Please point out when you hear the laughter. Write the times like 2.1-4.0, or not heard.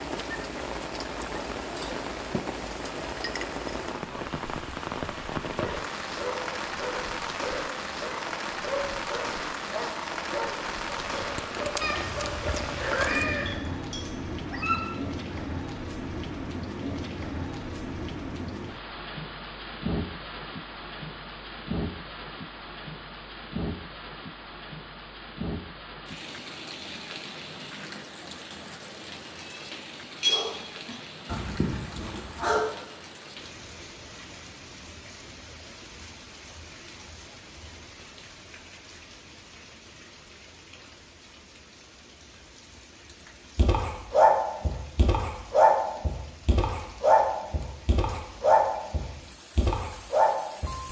not heard.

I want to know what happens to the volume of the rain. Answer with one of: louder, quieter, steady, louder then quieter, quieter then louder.
quieter.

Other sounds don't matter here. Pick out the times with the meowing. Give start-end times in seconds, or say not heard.
11.8-13.6, 29.4-30.9.